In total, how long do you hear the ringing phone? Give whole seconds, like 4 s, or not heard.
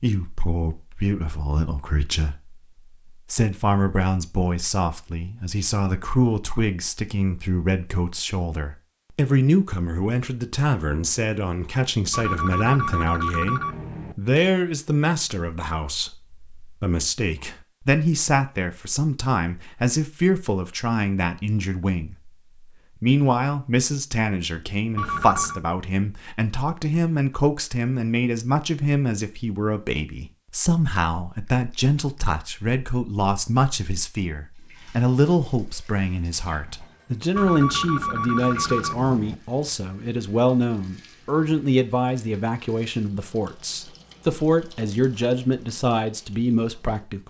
5 s.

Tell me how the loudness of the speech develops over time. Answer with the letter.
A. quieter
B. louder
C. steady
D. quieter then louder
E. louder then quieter
C.